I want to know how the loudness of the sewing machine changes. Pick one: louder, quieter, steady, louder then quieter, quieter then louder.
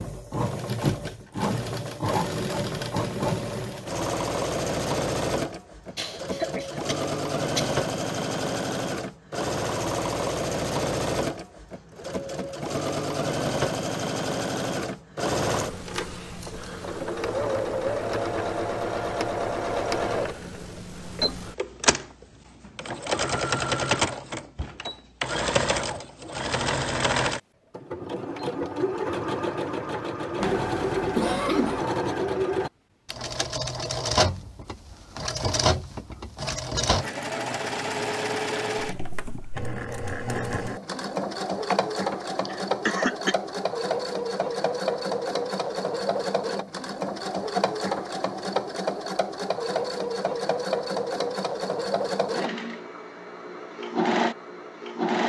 steady.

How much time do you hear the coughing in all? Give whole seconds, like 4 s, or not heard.
5 s.